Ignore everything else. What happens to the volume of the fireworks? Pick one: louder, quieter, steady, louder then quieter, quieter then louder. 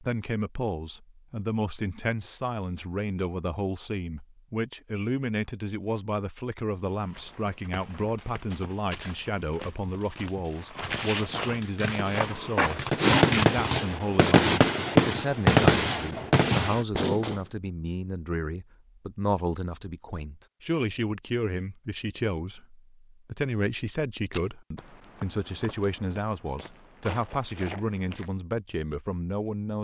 louder then quieter.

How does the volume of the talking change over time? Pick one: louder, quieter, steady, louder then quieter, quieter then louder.
steady.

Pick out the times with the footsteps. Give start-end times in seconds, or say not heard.
6.9-12.9, 24.3-28.3.